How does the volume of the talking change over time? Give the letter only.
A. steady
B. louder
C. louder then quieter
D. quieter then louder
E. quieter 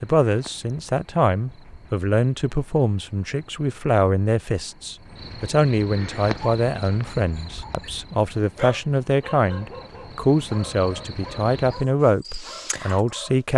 A.